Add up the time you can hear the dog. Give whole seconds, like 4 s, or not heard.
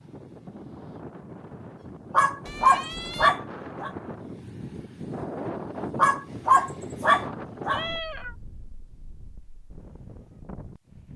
4 s.